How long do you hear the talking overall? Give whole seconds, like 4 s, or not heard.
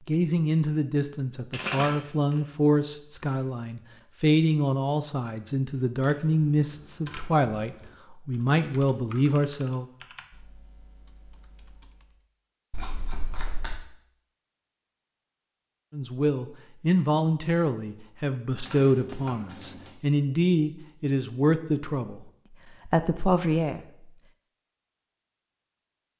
17 s.